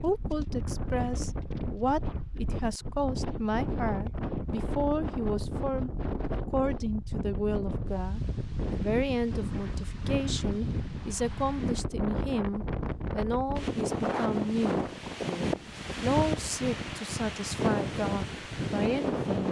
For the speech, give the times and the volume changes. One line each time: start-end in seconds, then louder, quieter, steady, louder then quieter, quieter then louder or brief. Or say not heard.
0.0-19.4 steady.